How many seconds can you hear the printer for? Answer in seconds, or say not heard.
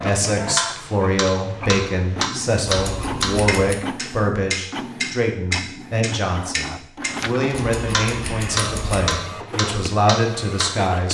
11 s.